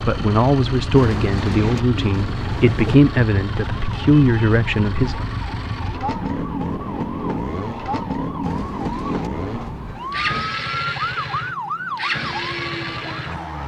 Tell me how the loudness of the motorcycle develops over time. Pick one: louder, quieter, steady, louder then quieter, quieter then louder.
steady.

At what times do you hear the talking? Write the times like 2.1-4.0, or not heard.
0.1-5.2.